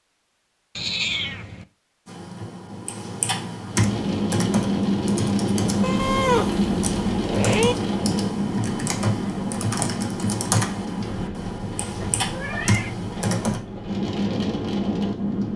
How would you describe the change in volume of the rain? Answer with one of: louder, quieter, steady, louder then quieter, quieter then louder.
quieter then louder.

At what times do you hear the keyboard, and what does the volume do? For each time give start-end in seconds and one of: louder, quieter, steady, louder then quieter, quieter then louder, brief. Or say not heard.
2.0-13.6 steady.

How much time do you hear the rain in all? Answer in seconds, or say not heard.
12 s.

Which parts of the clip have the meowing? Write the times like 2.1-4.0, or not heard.
0.8-1.6, 5.8-7.8, 12.0-12.9.